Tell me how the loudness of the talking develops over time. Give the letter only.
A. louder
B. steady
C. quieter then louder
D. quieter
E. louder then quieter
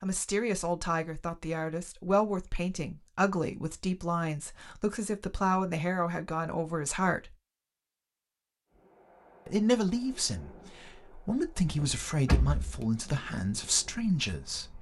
B.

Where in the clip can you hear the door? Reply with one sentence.
The door can be heard from 11.7 to 12.8 s.